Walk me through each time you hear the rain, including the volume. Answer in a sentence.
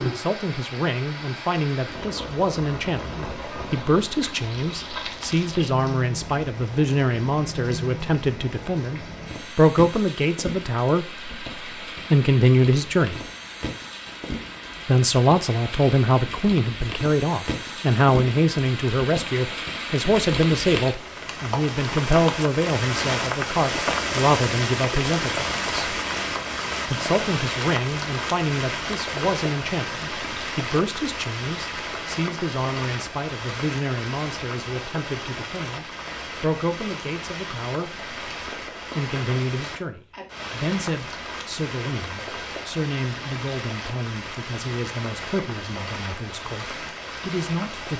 The rain can be heard from 0.0 to 47.9 s, getting louder then quieter.